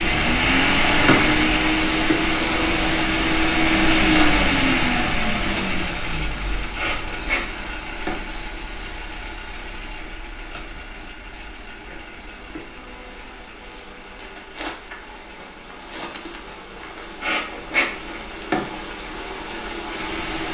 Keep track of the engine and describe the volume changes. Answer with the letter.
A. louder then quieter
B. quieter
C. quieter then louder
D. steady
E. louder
B.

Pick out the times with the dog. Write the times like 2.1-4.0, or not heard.
not heard.